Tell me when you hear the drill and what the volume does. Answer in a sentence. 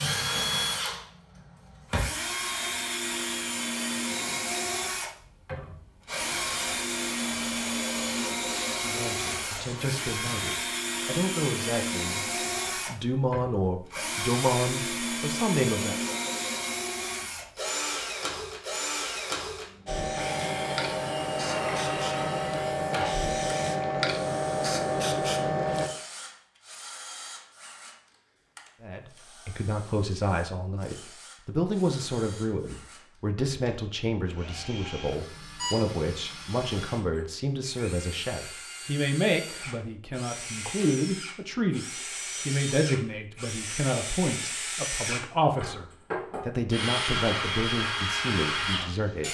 You can hear the drill from 0.0 to 49.2 s, getting quieter then louder.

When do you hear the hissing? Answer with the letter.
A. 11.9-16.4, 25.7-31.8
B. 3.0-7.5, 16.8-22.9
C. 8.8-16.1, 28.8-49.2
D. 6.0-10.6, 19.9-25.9
D.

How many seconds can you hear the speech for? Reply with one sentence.
The speech can be heard for 28 seconds in total.